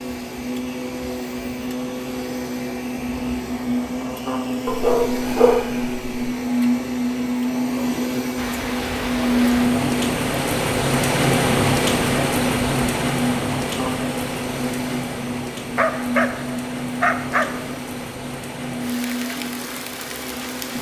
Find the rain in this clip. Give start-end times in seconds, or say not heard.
8.3-20.7.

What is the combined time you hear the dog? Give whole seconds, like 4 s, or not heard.
3 s.